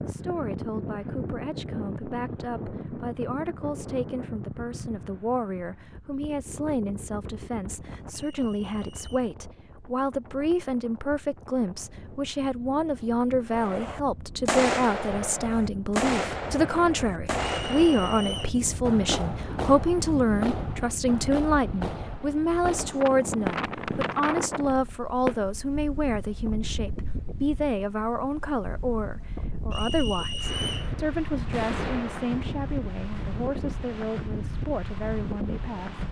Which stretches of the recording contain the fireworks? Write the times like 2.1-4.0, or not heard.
13.5-25.5, 30.4-33.2.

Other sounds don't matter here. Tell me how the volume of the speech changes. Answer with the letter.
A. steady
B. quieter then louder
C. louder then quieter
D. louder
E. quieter
C.